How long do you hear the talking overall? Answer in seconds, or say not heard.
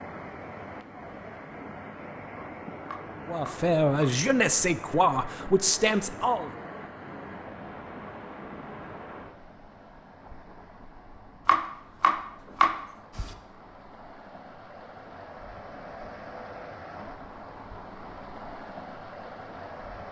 3 s.